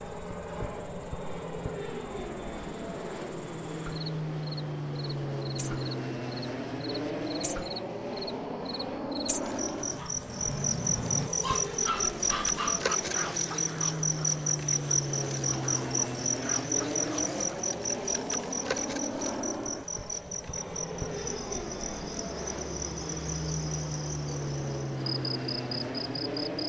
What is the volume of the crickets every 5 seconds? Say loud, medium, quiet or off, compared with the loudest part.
quiet, medium, loud, loud, medium, medium.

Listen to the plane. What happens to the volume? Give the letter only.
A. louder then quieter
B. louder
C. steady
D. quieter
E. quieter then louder
C.